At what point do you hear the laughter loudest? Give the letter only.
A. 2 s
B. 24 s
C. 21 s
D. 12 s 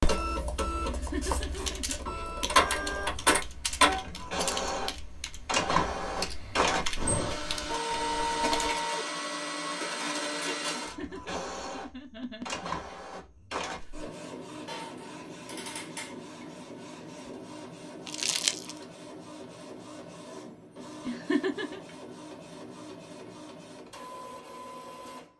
C.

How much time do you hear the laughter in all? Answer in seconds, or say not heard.
4 s.